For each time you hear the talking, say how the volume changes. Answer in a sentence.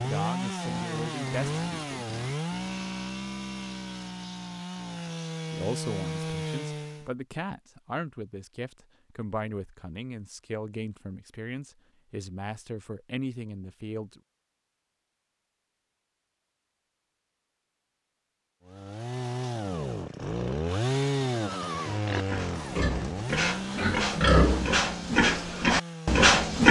The talking can be heard briefly from 0.0 to 2.0 s; and from 5.5 to 14.2 s, at a steady volume.